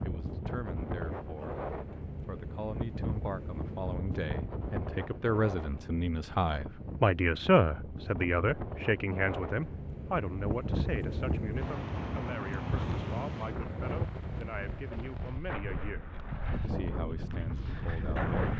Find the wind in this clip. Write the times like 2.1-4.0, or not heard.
0.0-18.5.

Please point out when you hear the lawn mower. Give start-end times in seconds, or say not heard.
not heard.